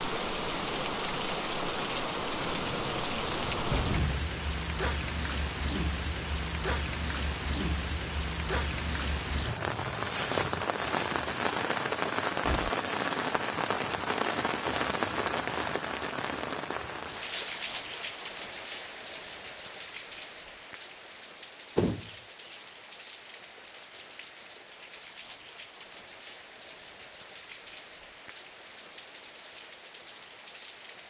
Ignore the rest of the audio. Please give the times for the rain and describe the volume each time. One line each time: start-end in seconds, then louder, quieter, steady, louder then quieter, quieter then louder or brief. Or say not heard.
0.0-31.0 quieter.